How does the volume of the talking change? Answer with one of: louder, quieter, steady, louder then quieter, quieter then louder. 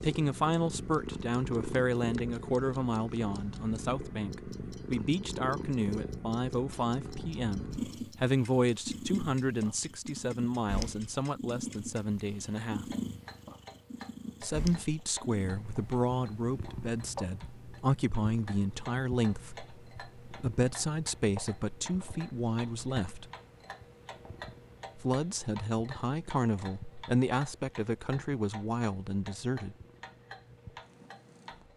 steady.